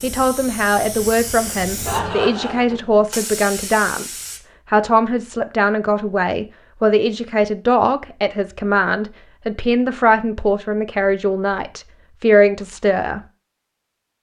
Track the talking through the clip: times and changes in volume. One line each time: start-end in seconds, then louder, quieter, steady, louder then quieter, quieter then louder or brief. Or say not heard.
0.0-13.2 steady.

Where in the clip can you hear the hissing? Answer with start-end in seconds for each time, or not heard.
0.0-4.4.